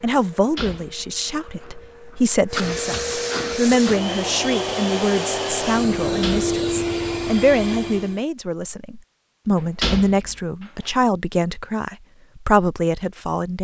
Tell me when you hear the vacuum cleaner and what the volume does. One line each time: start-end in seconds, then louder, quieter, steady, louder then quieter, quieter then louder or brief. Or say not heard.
0.0-8.2 louder.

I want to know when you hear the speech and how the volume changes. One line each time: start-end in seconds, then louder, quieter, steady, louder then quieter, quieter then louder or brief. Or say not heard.
0.0-13.5 steady.